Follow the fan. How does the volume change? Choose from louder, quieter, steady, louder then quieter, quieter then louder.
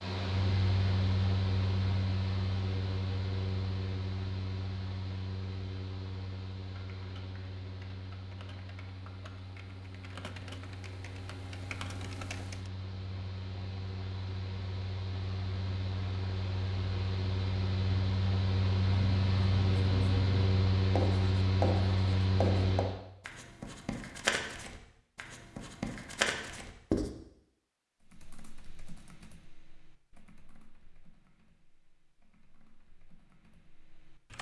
quieter then louder.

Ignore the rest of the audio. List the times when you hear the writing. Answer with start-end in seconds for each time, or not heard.
18.9-27.1.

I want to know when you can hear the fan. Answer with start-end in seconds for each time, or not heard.
0.0-23.0.